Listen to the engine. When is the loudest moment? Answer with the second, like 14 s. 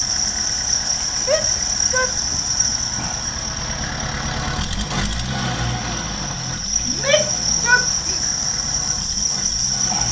5 s.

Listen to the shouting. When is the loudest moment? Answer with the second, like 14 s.
8 s.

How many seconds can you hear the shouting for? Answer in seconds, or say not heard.
2 s.